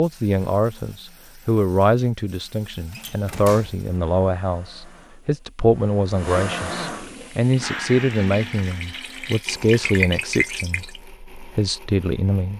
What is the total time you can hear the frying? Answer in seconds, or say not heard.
4 s.